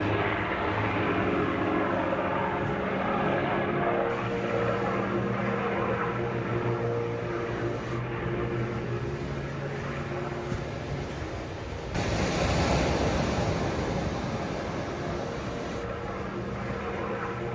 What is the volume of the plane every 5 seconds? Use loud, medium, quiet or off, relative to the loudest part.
loud, loud, medium, medium.